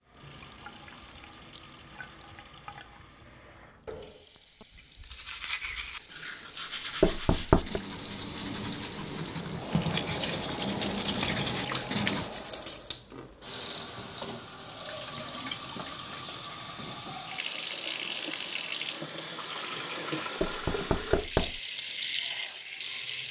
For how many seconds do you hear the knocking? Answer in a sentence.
You can hear the knocking for 2 seconds altogether.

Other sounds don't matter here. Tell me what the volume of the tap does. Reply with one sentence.
The volume of the tap goes up.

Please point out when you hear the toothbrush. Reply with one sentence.
You can hear the toothbrush from 4.8 to 12.3 s.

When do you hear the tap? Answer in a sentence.
The tap can be heard from 0.1 to 23.2 s.